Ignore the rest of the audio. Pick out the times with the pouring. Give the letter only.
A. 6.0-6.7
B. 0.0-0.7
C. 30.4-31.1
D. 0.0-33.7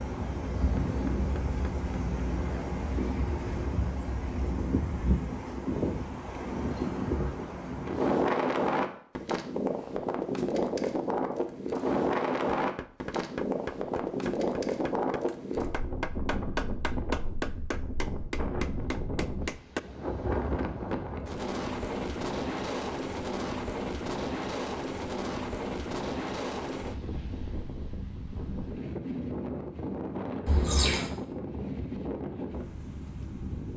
C.